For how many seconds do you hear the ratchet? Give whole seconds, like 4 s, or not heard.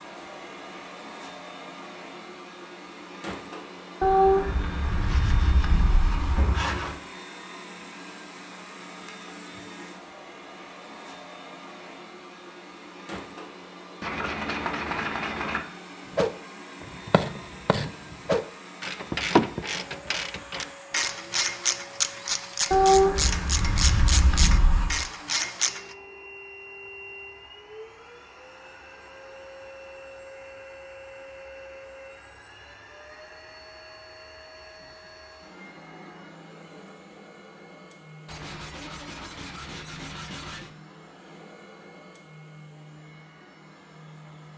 10 s.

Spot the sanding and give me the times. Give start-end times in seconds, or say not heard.
4.0-7.0, 14.0-15.6, 22.7-25.0, 38.2-40.7.